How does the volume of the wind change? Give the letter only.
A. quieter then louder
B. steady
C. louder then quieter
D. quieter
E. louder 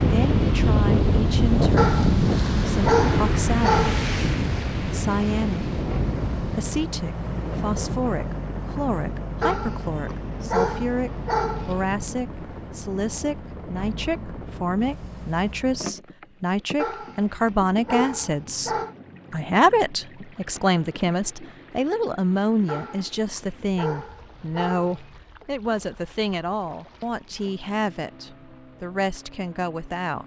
D.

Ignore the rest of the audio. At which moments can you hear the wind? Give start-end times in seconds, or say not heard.
0.0-15.6.